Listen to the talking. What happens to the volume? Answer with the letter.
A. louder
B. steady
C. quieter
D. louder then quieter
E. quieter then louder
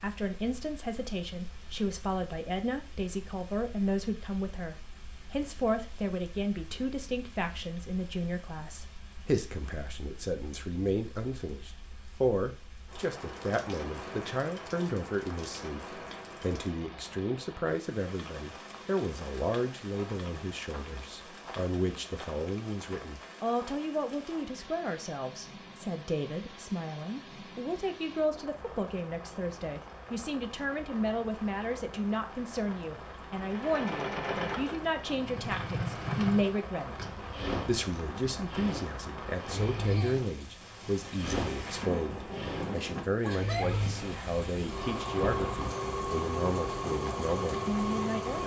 B.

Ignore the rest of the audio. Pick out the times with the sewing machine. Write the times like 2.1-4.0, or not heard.
33.4-48.4.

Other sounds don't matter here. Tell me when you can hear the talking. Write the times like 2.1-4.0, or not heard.
0.0-37.0, 37.6-48.4.